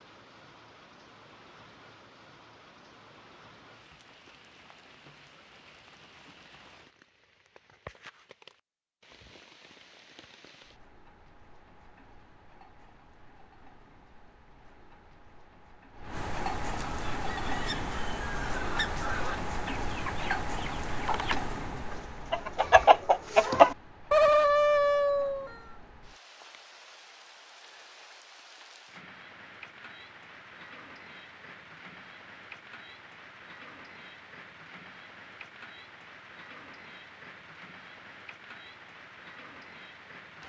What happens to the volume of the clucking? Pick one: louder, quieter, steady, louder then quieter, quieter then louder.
louder.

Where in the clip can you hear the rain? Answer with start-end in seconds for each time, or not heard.
0.0-40.4.